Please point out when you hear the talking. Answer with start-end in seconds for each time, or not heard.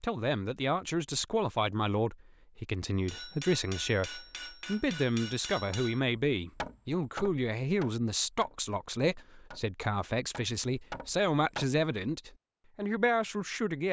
0.0-13.8.